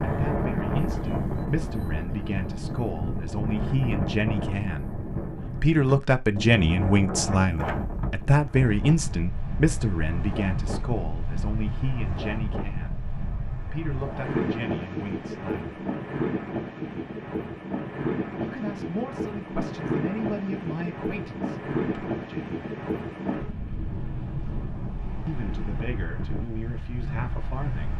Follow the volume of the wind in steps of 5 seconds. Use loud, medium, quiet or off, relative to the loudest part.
loud, loud, loud, loud, loud, medium.